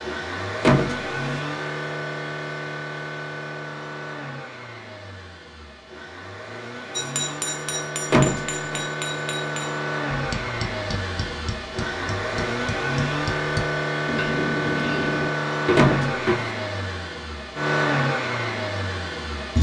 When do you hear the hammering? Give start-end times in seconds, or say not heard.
7.0-16.4.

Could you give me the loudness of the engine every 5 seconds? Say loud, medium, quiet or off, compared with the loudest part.
medium, medium, loud, loud.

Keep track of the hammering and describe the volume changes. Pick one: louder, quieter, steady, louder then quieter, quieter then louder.
quieter then louder.